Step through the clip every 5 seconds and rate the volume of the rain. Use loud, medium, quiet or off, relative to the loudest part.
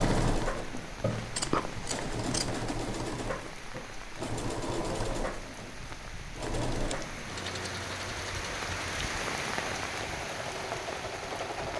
medium, loud, loud.